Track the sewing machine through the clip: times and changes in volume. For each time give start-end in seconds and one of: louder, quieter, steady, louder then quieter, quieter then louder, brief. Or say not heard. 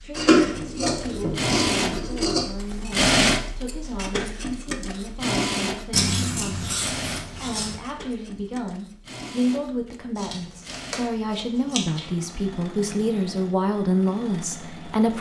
0.0-15.1 quieter.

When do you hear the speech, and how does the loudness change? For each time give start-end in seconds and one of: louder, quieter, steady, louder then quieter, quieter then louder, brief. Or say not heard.
0.0-15.1 louder.